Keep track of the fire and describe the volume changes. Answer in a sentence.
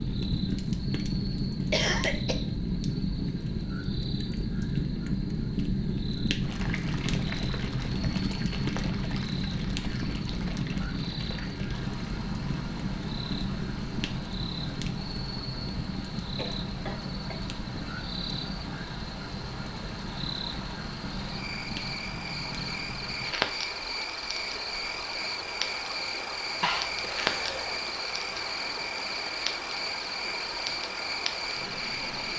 The loudness of the fire goes down.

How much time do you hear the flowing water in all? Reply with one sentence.
The flowing water can be heard for 26 seconds in total.